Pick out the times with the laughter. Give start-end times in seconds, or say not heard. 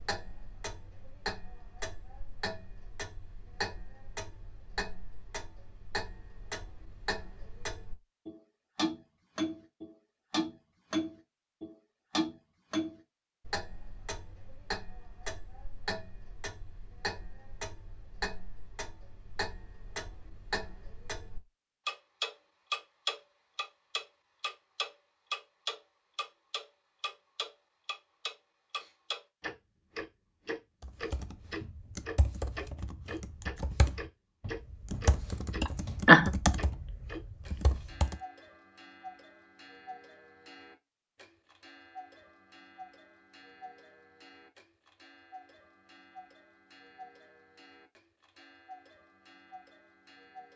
35.6-36.3.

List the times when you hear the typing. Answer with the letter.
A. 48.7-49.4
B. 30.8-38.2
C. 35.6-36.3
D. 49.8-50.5
B.